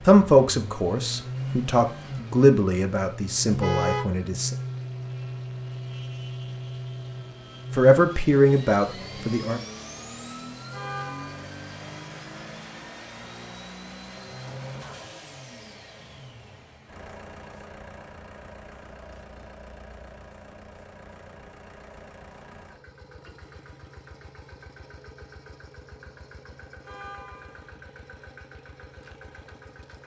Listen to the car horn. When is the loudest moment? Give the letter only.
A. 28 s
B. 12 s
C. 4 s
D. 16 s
C.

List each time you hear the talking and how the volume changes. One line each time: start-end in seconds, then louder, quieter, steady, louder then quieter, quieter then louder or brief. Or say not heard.
0.1-4.5 louder then quieter
7.7-9.6 brief.